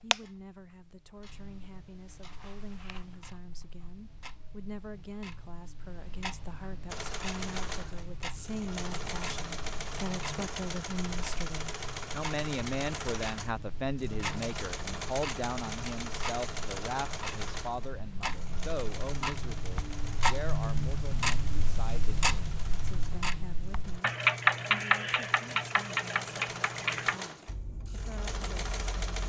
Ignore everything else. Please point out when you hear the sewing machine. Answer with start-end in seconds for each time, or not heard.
6.8-29.2.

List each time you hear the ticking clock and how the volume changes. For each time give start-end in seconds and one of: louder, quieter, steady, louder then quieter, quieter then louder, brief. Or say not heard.
0.0-29.2 louder.